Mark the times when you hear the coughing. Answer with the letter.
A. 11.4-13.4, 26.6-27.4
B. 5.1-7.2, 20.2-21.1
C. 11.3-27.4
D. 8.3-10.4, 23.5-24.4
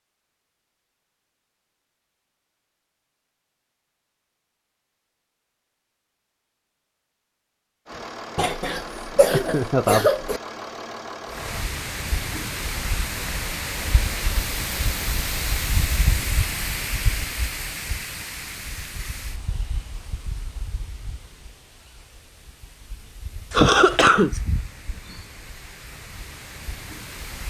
D.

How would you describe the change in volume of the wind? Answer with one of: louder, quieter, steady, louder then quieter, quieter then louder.
quieter then louder.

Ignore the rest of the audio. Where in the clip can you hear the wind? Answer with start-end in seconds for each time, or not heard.
11.3-27.4.